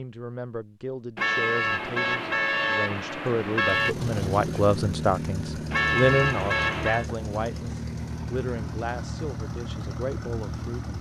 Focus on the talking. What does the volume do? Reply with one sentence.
The loudness of the talking goes up, then down.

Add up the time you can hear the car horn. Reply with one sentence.
The car horn can be heard for 4 seconds in total.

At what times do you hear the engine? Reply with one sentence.
You can hear the engine from 3.5 to 10.9 s.